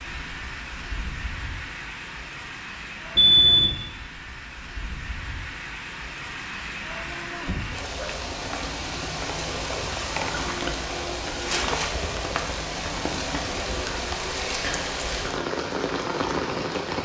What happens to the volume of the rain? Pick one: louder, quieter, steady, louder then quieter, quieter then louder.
louder.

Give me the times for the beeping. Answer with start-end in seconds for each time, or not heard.
3.1-3.8.